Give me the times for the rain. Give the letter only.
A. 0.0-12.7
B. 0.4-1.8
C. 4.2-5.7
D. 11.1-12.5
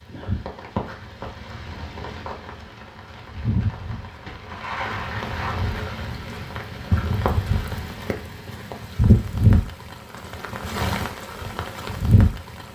A.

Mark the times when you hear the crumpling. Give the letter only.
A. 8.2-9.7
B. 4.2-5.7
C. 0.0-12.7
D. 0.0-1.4
B.